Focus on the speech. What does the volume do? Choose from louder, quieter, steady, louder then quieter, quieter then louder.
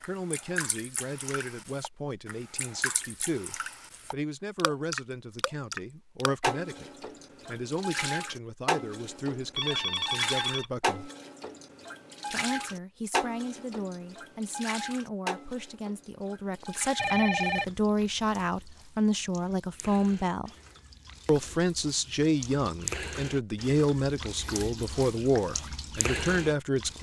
louder.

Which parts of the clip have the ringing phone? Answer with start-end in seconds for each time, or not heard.
9.6-10.8, 16.9-17.8.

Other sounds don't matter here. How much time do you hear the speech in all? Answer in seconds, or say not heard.
25 s.